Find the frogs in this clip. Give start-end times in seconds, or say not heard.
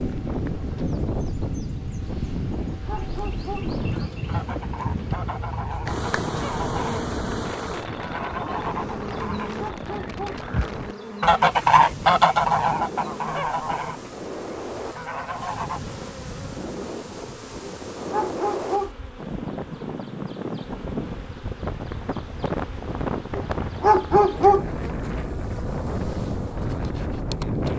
not heard.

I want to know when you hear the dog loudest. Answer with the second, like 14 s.
24 s.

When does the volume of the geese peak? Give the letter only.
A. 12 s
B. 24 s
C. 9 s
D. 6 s
A.